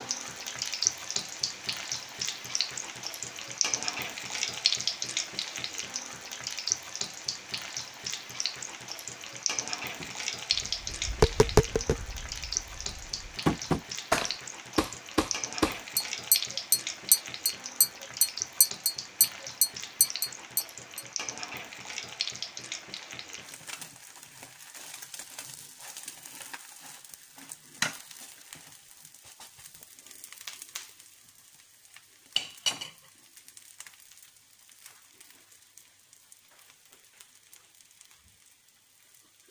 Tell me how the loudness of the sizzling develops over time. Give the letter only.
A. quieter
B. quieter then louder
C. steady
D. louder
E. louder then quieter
A.